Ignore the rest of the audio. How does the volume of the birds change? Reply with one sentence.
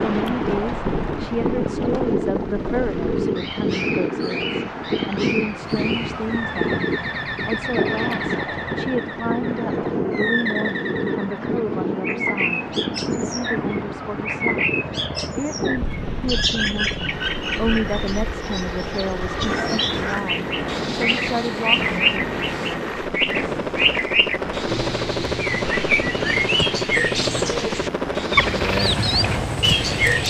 The loudness of the birds goes up.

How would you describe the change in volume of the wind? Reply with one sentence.
The loudness of the wind goes down.